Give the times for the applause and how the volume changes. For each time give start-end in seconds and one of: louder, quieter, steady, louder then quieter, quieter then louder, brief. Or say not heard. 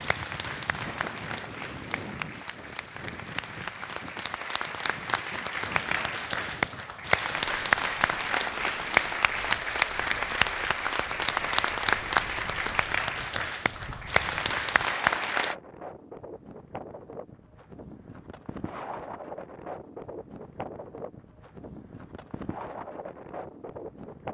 0.0-15.6 louder.